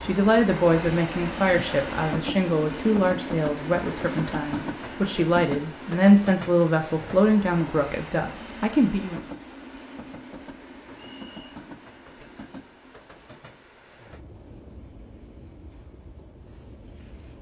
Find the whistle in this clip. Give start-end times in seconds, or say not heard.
10.9-11.6.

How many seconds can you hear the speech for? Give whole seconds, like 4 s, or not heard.
9 s.